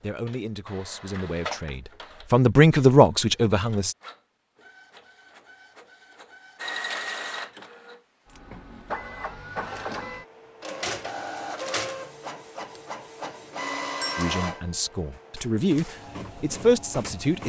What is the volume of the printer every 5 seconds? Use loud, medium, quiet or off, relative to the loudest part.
medium, loud, loud, medium.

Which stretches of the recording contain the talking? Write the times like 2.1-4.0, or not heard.
0.0-4.0, 14.2-17.4.